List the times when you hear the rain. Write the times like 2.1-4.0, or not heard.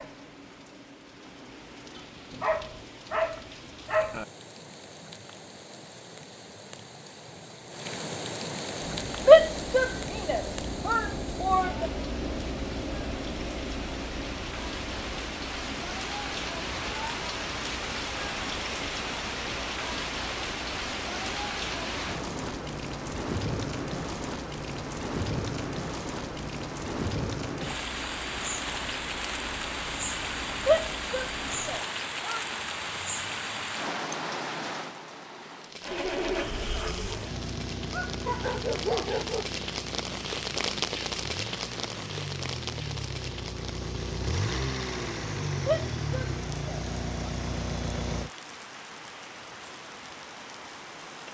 0.0-51.2.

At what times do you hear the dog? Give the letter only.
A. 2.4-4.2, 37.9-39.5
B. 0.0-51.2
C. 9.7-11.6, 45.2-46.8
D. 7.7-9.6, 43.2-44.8
A.